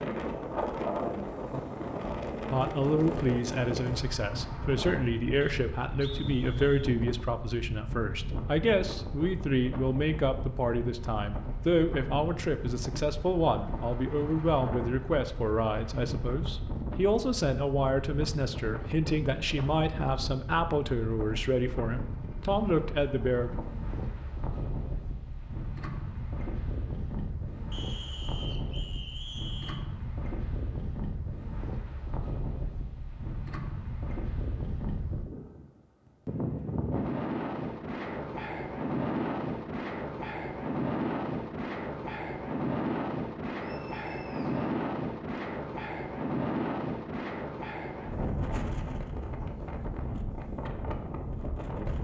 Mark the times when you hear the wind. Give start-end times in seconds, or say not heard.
0.0-51.9.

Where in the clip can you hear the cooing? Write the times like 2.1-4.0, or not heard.
not heard.